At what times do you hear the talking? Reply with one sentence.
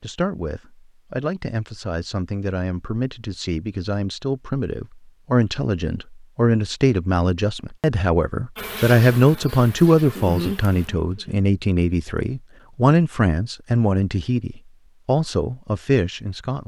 The talking can be heard from 0.0 to 16.6 s.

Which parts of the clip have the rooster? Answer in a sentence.
The rooster can't be heard in this clip.